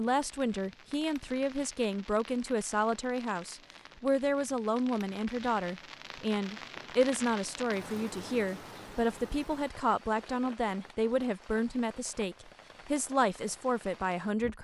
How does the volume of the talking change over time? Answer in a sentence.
The volume of the talking stays about the same.